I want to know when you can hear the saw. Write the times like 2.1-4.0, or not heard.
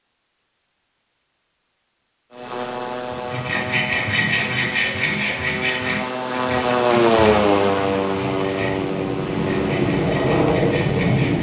3.1-11.3.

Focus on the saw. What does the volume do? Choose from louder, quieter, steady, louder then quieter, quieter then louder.
quieter.